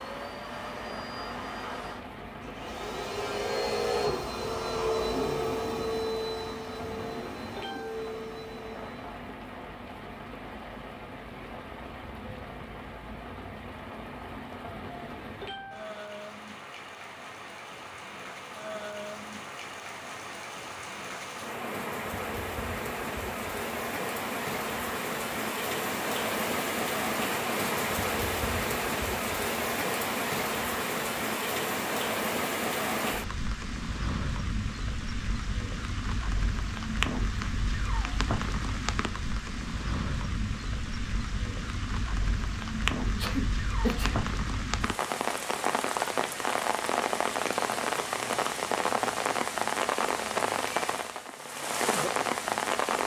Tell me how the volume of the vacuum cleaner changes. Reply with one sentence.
The loudness of the vacuum cleaner goes up, then down.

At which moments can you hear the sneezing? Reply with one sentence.
The sneezing can be heard from 43.1 to 44.2 s.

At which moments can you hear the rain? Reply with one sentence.
You can hear the rain from 0.0 to 53.0 s.